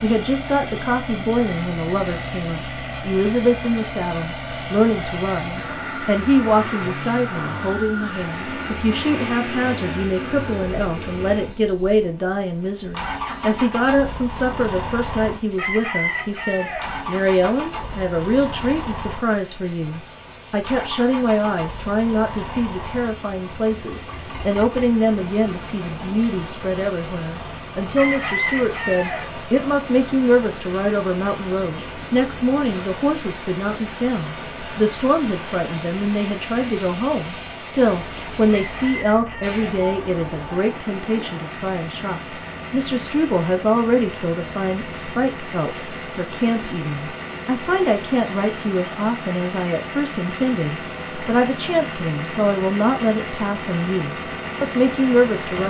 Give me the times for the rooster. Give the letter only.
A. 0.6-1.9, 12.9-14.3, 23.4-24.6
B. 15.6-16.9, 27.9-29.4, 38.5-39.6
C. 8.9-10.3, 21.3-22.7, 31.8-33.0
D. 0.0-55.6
B.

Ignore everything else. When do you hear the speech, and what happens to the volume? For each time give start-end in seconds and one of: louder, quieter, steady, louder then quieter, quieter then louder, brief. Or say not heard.
0.0-55.6 steady.